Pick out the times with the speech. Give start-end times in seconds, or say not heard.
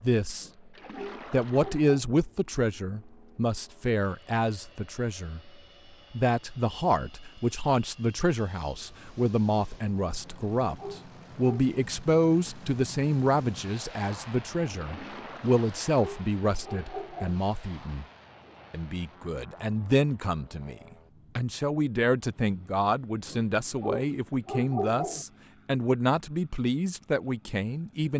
0.0-0.5, 1.3-5.5, 6.1-18.1, 18.7-20.8, 21.4-28.1.